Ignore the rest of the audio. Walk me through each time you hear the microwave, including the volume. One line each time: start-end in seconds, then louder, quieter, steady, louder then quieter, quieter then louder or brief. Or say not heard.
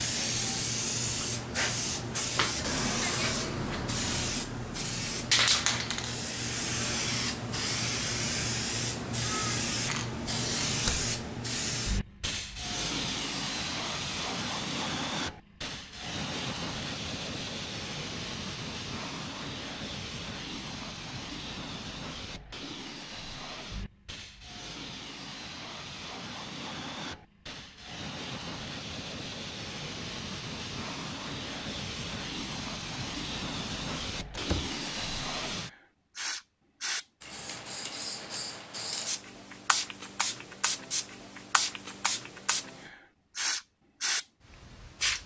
not heard.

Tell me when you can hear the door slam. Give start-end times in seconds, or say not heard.
10.7-11.1, 34.3-34.8.